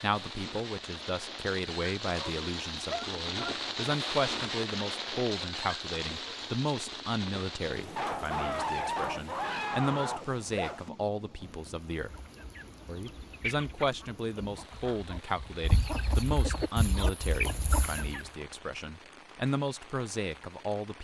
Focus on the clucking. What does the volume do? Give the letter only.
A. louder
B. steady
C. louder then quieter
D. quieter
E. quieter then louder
E.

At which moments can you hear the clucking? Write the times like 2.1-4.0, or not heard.
12.1-18.2.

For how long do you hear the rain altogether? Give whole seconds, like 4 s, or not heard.
21 s.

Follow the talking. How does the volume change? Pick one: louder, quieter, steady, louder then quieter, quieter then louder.
steady.